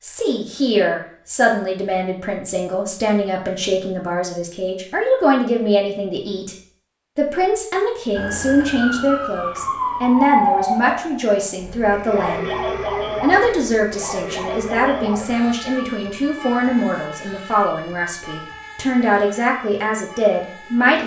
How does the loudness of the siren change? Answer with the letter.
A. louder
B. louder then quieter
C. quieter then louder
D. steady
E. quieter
E.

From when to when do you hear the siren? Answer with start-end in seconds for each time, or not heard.
8.2-21.0.